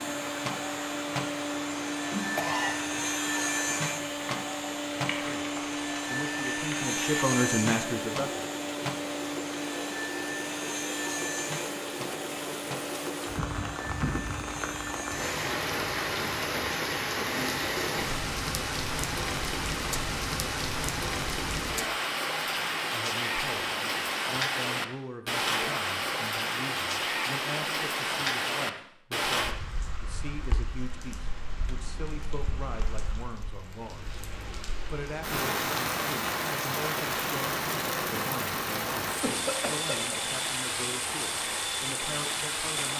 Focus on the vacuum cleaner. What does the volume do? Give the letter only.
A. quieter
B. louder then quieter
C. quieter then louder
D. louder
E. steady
A.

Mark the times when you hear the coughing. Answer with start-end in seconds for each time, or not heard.
2.4-3.0, 39.2-40.1.